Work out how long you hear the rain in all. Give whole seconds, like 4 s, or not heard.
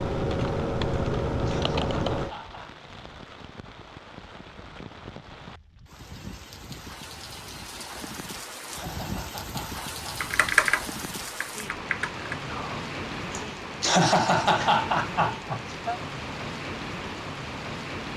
18 s.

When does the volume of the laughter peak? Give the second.
14 s.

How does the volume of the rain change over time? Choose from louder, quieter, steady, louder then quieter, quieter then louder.
louder.